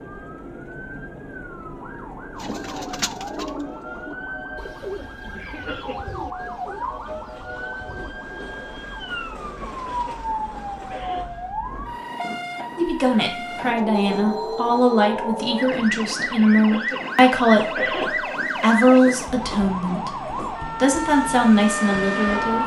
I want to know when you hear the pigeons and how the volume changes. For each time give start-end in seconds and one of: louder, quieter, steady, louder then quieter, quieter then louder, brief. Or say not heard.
2.4-10.2 quieter.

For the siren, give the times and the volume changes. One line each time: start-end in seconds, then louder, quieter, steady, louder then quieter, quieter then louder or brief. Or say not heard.
0.0-22.6 louder.